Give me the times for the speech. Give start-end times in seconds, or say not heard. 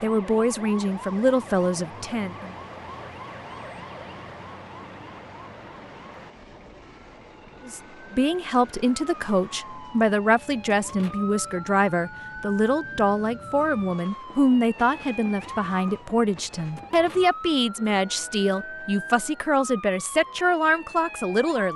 0.0-2.5, 7.7-21.7.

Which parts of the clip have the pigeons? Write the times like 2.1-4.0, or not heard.
not heard.